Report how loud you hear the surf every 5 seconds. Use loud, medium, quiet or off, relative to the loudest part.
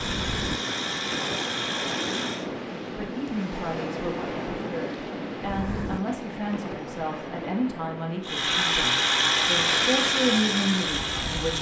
loud, loud, medium.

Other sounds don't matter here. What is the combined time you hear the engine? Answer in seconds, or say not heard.
6 s.